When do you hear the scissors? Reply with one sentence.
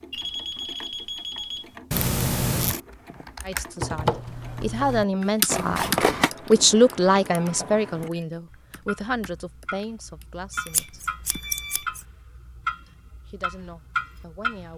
You can hear the scissors from 1.9 to 2.8 s, from 5.5 to 6.3 s and from 10.7 to 12.0 s.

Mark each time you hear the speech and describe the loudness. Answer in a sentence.
You can hear the speech from 3.4 to 11.0 s, getting louder then quieter; and briefly from 12.8 to 14.7 s.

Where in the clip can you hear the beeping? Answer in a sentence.
The beeping can be heard from 0.1 to 1.8 s, from 7.6 to 8.2 s and from 10.5 to 11.9 s.